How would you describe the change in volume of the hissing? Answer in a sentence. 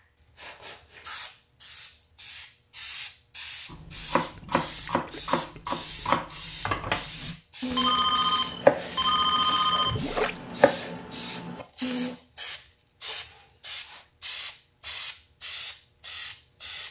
The loudness of the hissing stays about the same.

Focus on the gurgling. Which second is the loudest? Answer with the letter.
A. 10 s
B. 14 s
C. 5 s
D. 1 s
A.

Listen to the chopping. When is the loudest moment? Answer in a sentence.
The volume of the chopping peaks at 9 seconds.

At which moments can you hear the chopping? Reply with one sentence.
The chopping can be heard from 3.7 to 12.2 s.